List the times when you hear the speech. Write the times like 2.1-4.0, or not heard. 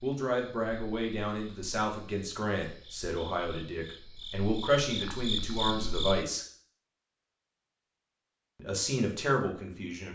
0.0-6.5, 8.6-10.0.